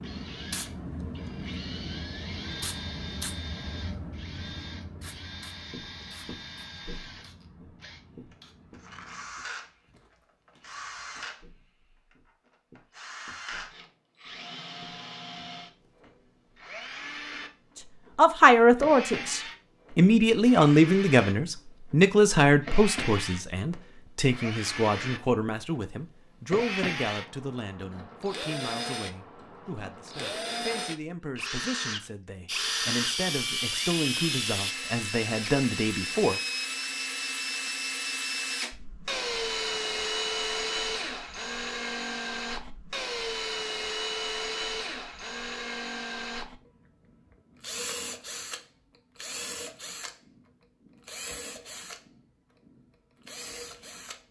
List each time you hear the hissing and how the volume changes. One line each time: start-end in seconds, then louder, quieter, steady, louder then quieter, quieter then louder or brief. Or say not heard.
0.0-9.3 quieter
32.5-34.8 brief.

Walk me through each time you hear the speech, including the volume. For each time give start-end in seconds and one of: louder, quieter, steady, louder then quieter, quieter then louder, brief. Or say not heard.
18.1-36.4 quieter then louder.